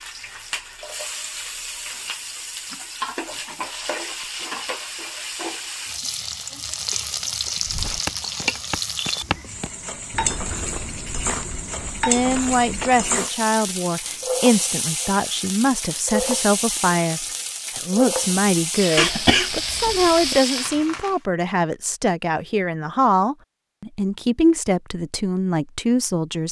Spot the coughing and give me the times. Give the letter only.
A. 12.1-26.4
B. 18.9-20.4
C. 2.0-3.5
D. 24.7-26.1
B.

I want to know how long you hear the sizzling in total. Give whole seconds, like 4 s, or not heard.
21 s.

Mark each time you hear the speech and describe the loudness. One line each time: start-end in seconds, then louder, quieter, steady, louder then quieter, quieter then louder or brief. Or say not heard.
12.1-26.4 steady.